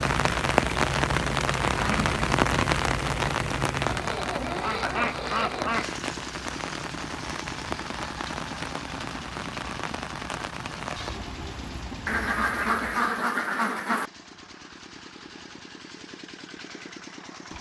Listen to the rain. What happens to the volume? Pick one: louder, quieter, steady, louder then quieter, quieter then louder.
quieter.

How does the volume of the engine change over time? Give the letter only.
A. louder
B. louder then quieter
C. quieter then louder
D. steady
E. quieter
E.